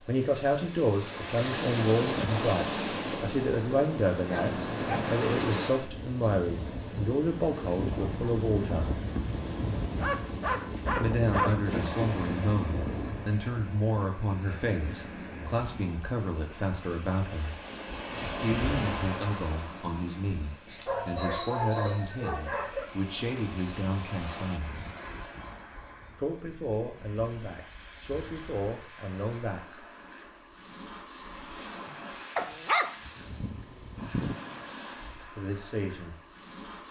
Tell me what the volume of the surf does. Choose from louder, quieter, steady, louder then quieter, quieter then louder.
quieter.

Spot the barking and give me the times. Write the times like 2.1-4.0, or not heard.
4.2-5.0, 9.9-11.8, 20.9-22.9, 32.4-34.4.